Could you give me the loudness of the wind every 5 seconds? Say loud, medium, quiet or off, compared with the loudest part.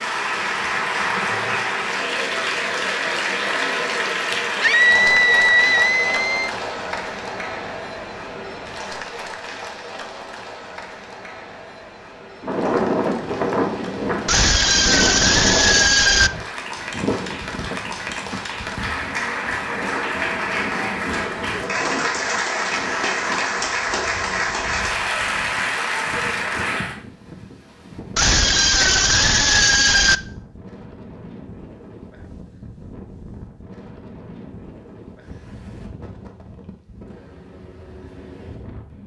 off, off, loud, medium, quiet, quiet, quiet, quiet.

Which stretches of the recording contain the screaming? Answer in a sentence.
You can hear the screaming from 4.6 to 6.5 s, from 14.2 to 16.3 s and from 28.1 to 30.2 s.